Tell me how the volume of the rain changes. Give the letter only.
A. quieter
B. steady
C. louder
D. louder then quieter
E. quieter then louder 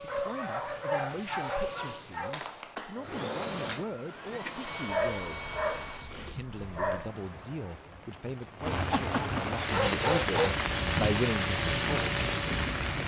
C.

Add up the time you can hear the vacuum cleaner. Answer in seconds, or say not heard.
10 s.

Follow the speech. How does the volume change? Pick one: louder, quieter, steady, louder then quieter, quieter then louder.
louder.